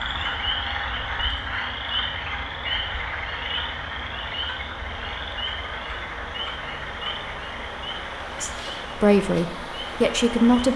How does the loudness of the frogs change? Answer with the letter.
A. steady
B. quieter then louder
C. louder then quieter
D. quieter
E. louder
D.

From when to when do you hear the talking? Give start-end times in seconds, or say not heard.
8.4-10.7.